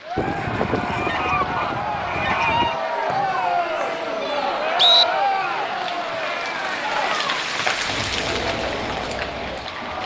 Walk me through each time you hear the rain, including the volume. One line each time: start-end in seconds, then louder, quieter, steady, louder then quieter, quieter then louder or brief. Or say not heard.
0.0-10.0 louder.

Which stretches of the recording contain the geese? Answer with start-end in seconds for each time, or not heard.
0.1-2.8.